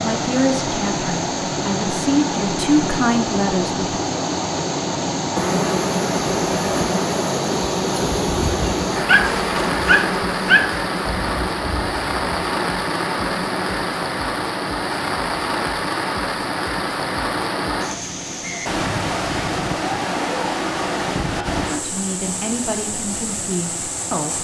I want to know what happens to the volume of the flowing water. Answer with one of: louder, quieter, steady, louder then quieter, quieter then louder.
steady.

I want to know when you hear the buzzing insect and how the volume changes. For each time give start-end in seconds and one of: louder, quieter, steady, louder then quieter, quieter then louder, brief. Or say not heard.
5.3-14.1 quieter.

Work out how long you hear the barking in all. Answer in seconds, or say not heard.
2 s.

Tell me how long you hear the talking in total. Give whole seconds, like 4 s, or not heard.
6 s.